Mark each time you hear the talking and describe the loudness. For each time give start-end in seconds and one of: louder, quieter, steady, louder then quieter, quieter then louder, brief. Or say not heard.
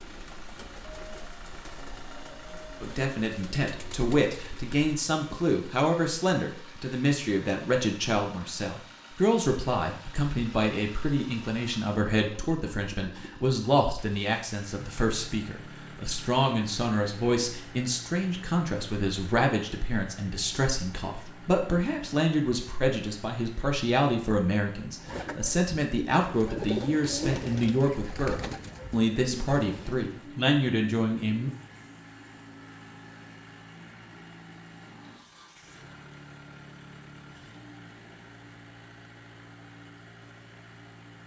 2.8-31.5 steady.